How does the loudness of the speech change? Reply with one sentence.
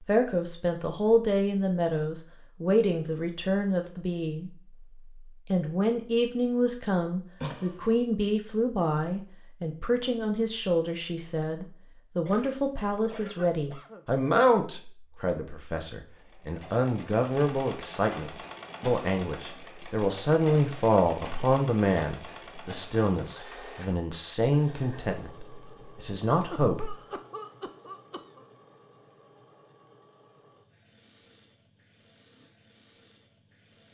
The volume of the speech stays about the same.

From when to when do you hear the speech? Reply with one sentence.
The speech can be heard from 0.1 to 4.5 s and from 5.5 to 26.9 s.